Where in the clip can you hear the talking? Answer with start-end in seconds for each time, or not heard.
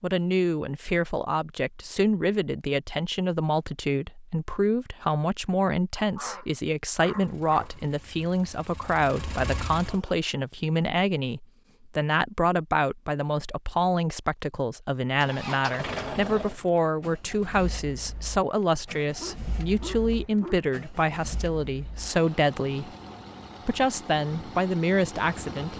0.0-22.9, 23.6-25.7.